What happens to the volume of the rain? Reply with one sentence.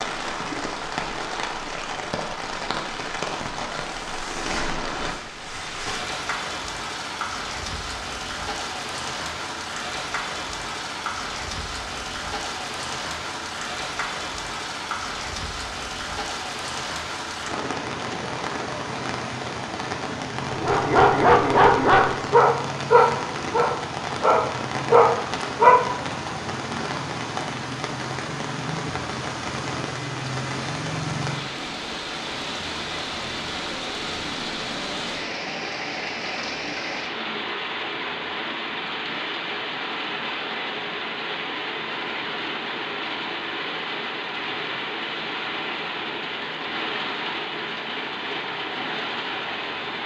The loudness of the rain stays about the same.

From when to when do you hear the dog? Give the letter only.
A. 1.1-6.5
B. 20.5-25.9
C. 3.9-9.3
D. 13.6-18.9
B.